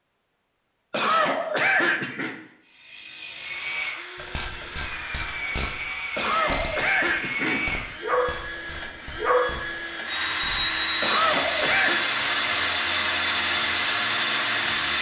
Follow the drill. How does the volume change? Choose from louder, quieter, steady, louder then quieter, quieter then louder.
louder.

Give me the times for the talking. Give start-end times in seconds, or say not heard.
not heard.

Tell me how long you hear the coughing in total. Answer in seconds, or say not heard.
4 s.